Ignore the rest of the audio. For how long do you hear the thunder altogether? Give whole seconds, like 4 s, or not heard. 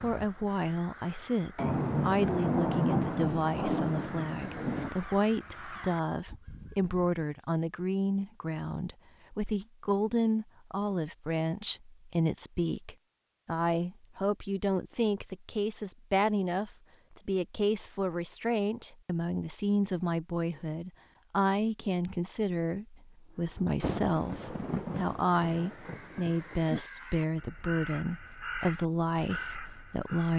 6 s.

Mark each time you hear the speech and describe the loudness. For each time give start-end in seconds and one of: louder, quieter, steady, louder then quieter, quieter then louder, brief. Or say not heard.
0.0-30.3 steady.